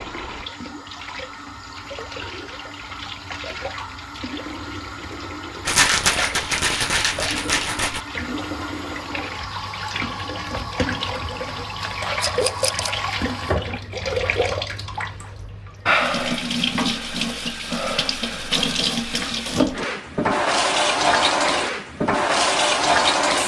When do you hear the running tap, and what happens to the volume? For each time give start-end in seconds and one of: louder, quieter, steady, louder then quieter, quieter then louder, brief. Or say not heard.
0.0-23.4 louder.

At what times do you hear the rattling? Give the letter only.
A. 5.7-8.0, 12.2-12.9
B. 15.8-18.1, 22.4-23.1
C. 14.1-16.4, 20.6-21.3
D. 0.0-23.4
A.